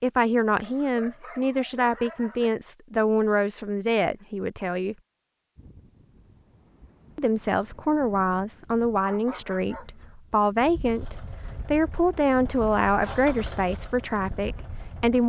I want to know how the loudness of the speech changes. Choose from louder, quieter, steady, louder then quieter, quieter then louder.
steady.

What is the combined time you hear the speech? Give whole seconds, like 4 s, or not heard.
13 s.